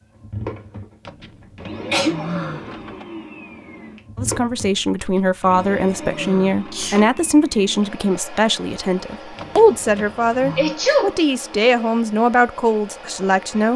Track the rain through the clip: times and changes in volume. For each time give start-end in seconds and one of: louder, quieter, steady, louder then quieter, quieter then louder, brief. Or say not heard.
not heard.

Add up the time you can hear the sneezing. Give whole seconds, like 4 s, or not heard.
2 s.